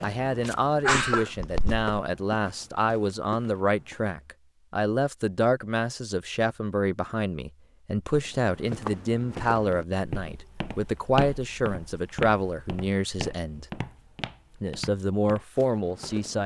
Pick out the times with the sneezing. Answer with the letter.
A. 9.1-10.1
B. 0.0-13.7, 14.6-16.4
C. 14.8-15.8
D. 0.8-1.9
D.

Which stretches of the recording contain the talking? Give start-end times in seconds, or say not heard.
0.0-13.7, 14.6-16.4.